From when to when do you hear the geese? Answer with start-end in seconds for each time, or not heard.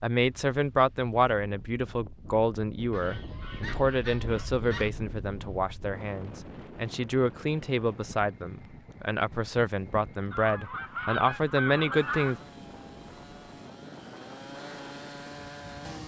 2.9-4.9, 10.3-12.4.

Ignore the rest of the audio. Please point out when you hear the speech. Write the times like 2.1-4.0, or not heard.
0.0-12.4.